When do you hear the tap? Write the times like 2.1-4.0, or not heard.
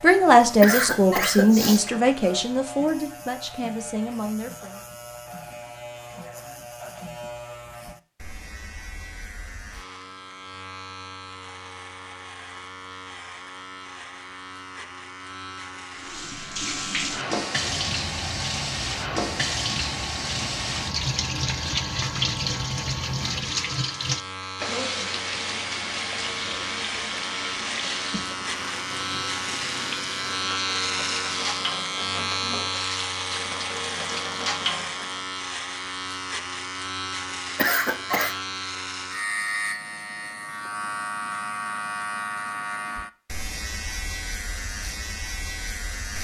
15.9-35.2.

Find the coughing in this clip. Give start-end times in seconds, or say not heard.
0.6-1.9, 37.5-38.4.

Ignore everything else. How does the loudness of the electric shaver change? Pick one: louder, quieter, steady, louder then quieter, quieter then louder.
louder.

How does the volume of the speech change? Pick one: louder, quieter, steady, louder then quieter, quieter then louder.
quieter.